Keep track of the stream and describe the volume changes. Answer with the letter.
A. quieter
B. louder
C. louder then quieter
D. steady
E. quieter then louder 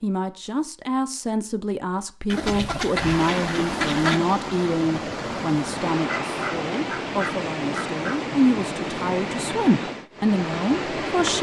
D.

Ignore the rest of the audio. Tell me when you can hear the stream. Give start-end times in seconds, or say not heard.
2.9-11.3.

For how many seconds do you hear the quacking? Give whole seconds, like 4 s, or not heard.
4 s.